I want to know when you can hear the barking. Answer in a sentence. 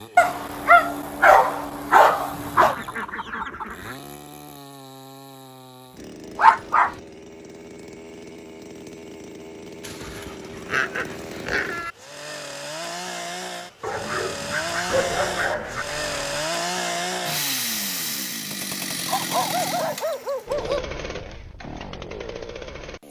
The barking can be heard from 0.1 to 2.8 s, from 6.3 to 7.0 s, from 9.8 to 11.9 s, from 13.8 to 15.8 s and from 19.1 to 20.9 s.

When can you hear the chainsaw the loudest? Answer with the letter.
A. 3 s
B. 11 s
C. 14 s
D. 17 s
D.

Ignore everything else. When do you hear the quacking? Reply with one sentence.
The quacking can be heard from 2.3 to 4.0 s and from 14.8 to 16.4 s.